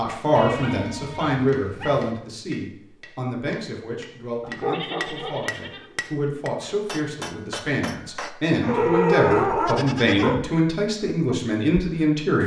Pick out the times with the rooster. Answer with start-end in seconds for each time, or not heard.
not heard.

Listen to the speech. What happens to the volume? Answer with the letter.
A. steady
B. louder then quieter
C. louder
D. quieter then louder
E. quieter
D.